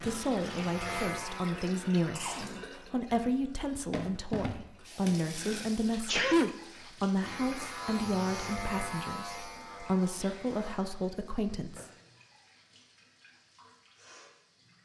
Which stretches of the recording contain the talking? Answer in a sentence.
The talking can be heard from 0.0 to 11.9 s.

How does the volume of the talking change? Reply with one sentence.
The loudness of the talking stays about the same.